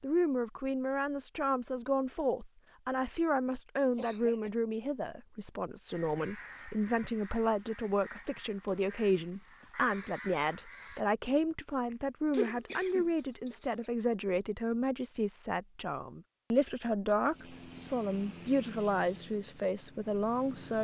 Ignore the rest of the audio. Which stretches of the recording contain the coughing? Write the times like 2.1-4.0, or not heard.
4.0-4.5, 12.3-13.9.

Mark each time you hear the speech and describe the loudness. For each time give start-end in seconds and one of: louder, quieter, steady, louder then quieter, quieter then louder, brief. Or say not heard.
0.0-20.7 steady.